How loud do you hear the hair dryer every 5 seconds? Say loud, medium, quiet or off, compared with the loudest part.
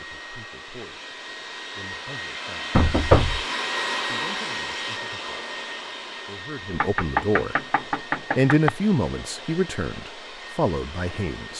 loud, medium, medium.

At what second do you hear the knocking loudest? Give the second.
3 s.